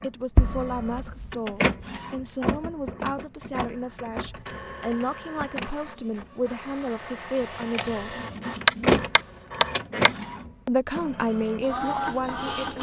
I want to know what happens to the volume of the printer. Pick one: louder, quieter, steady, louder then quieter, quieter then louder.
quieter then louder.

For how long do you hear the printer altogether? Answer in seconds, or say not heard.
13 s.